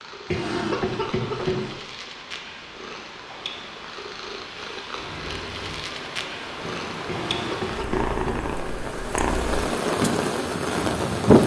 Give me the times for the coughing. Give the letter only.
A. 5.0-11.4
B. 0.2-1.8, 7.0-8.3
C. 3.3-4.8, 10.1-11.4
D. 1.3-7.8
B.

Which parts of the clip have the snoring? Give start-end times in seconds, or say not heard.
not heard.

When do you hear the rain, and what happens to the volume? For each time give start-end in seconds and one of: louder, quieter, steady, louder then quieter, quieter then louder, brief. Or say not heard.
5.0-11.4 louder.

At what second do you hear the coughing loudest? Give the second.
1 s.